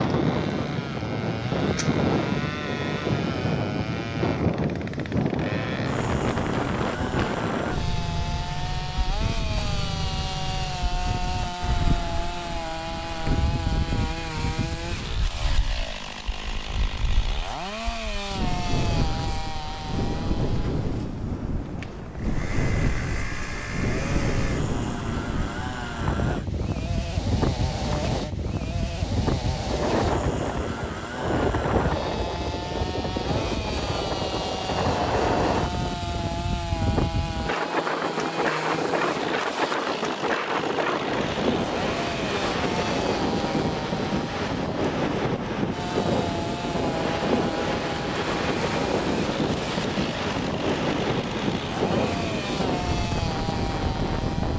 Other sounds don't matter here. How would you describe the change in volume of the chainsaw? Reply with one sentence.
The loudness of the chainsaw stays about the same.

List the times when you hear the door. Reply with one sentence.
The door can't be heard in this clip.